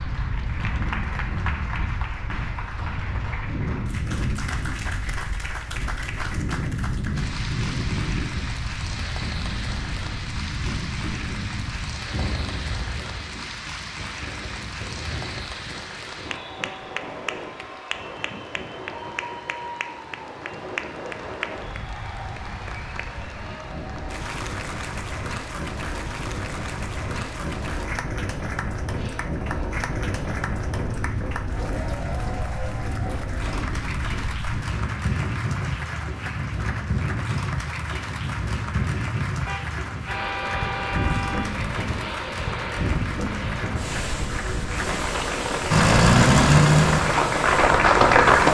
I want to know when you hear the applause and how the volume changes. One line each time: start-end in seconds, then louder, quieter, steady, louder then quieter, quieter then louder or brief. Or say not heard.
0.0-48.4 louder.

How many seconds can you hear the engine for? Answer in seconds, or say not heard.
3 s.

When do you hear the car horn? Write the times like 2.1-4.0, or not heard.
39.5-41.5.